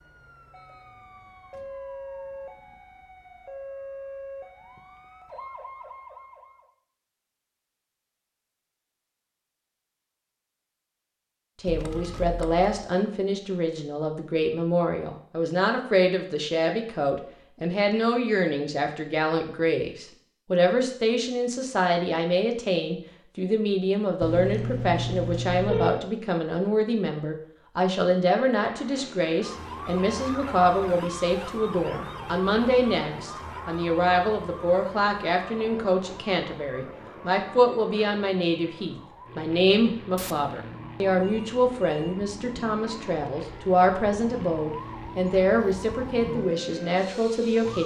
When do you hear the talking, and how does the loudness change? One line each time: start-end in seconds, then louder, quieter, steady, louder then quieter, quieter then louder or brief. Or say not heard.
11.6-47.8 steady.